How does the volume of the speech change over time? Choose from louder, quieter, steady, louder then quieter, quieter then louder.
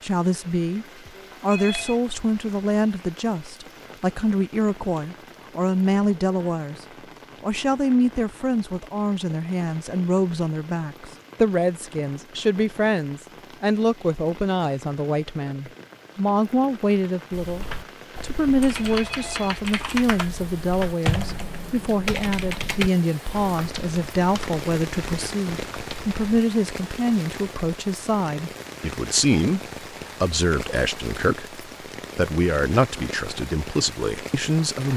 steady.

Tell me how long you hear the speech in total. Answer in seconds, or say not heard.
34 s.